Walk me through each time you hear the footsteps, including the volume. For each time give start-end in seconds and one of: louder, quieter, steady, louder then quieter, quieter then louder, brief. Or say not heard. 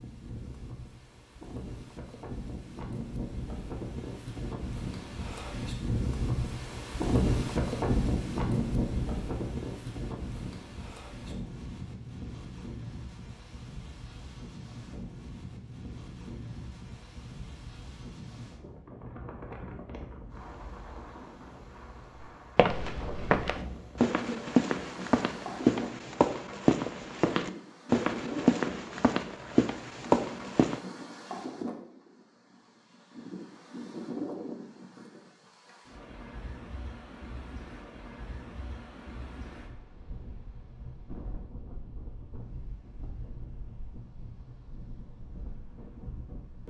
22.6-30.8 steady.